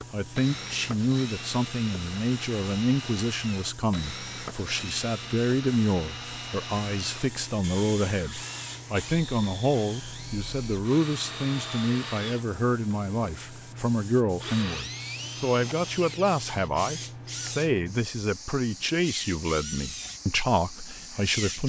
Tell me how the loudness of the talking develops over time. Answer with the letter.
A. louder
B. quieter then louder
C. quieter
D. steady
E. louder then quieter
D.